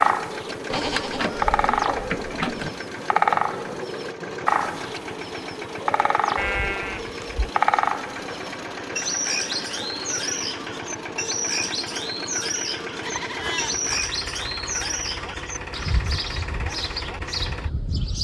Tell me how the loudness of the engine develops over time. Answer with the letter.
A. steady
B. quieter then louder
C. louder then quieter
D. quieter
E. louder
A.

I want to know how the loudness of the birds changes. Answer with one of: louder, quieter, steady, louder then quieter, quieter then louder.
quieter.